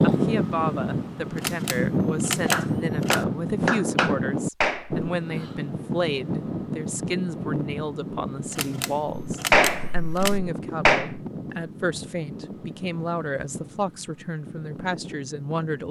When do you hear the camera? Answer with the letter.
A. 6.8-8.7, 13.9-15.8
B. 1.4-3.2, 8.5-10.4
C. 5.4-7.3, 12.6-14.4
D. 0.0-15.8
B.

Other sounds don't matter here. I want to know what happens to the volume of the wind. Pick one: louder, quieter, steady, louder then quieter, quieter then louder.
quieter.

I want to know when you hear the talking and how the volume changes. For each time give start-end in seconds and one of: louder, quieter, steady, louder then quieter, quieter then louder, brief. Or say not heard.
0.0-15.8 steady.